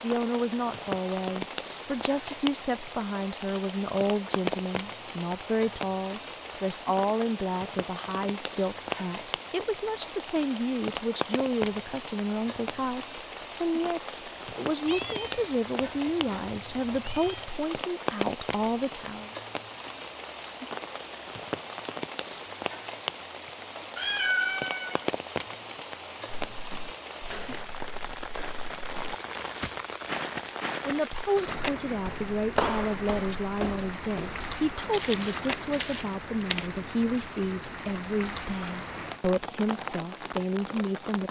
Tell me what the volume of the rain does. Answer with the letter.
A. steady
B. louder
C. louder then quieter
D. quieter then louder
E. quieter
A.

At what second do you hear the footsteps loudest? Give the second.
33 s.